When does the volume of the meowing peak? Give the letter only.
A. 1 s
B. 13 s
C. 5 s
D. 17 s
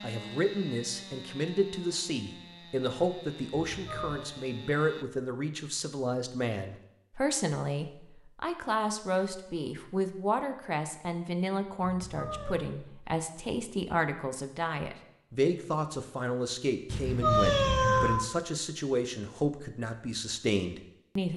D.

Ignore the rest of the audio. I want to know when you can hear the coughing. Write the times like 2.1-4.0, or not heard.
not heard.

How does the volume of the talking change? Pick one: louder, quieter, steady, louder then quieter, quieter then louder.
steady.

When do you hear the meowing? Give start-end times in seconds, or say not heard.
3.6-4.2, 11.8-12.7, 16.9-18.3.